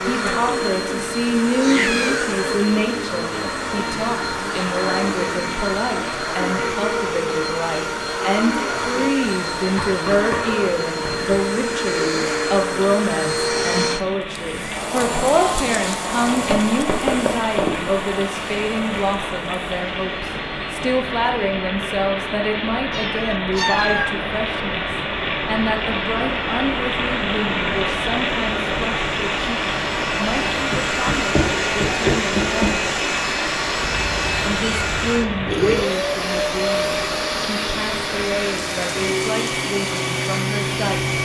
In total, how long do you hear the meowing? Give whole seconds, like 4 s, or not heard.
4 s.